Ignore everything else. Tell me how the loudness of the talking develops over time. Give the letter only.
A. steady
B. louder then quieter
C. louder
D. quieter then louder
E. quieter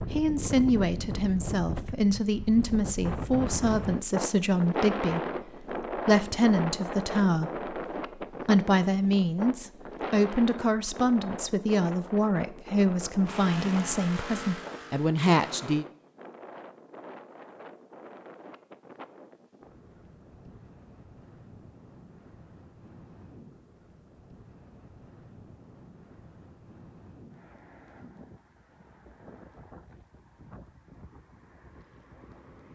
A.